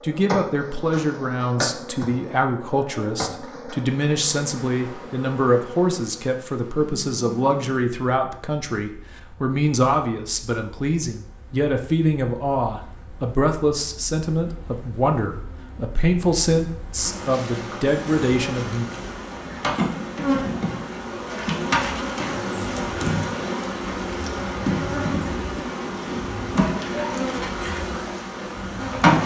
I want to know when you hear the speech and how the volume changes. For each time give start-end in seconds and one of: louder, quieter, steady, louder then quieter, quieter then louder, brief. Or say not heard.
0.0-18.9 steady.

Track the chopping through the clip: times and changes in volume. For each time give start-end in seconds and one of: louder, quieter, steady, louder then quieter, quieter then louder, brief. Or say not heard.
not heard.